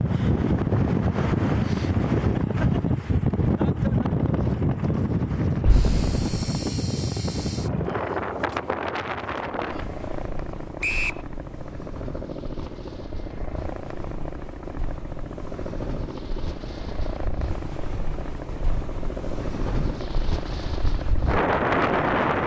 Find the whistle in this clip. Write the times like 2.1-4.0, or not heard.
10.8-11.2.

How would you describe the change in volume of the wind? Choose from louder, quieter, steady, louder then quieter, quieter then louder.
quieter then louder.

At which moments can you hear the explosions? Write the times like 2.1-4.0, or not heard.
5.7-6.5.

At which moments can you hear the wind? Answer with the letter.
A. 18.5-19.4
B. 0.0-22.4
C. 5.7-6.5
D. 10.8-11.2
B.